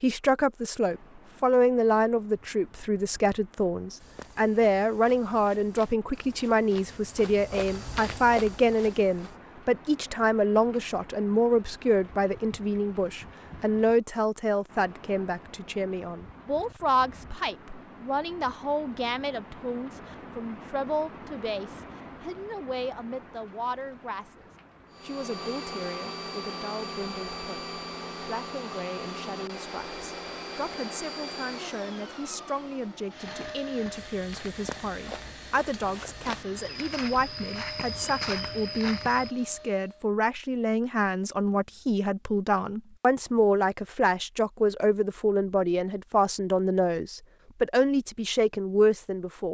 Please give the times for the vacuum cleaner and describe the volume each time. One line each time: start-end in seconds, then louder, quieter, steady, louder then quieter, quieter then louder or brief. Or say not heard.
24.9-40.1 quieter.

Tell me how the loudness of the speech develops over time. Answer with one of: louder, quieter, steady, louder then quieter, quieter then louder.
quieter then louder.